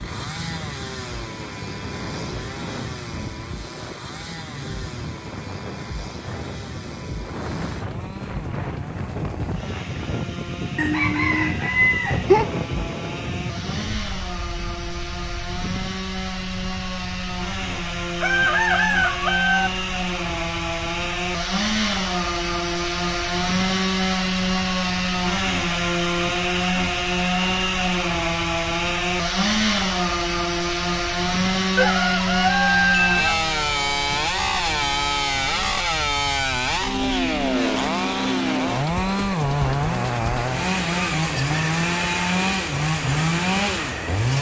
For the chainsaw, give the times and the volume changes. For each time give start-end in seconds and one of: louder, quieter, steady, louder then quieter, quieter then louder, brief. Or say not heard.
0.0-44.3 louder.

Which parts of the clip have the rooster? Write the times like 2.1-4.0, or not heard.
10.8-12.5, 17.7-19.7, 31.8-33.5.